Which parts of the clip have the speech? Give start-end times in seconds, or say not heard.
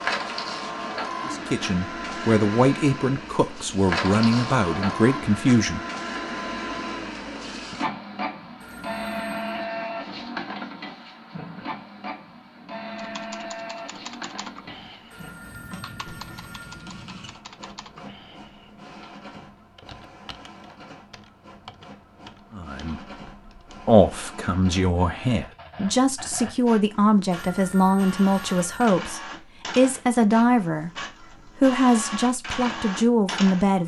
1.2-5.8, 22.6-30.9, 31.6-33.8.